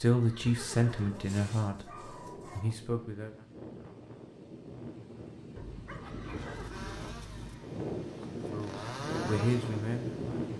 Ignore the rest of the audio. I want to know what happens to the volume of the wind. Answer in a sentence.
The loudness of the wind goes up.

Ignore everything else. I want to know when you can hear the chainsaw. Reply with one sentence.
The chainsaw can be heard from 6.7 to 10.2 s.